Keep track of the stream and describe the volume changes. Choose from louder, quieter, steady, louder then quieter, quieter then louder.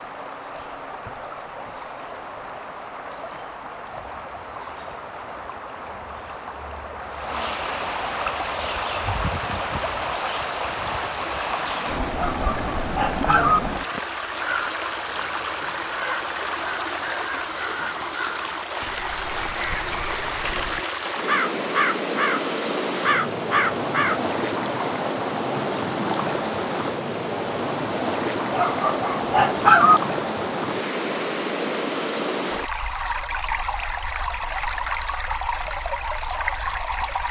louder.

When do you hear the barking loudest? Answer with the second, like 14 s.
30 s.